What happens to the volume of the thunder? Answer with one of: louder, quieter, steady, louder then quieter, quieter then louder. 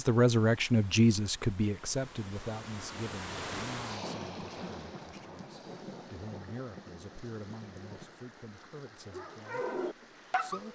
quieter.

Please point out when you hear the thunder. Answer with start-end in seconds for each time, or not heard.
4.0-8.2.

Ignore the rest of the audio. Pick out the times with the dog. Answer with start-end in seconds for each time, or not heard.
9.1-10.7.